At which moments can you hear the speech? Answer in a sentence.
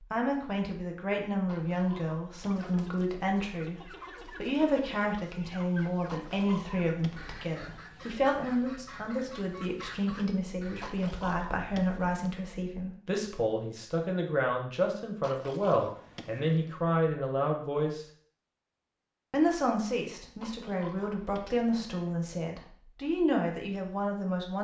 The speech can be heard from 0.1 to 18.1 s and from 19.3 to 24.6 s.